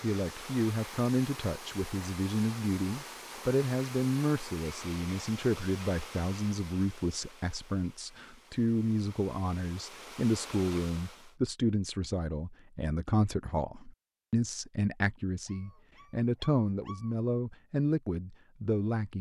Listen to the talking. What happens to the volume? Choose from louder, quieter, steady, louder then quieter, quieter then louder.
steady.